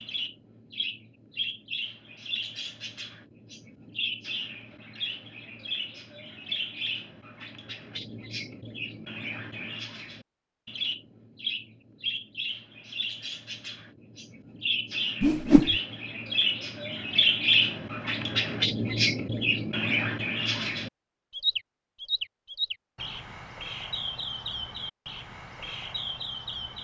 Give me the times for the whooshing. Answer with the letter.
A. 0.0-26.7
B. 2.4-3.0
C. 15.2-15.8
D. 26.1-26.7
C.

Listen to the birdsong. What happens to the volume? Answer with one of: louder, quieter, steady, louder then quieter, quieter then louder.
louder then quieter.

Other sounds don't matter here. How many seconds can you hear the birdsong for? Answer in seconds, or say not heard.
27 s.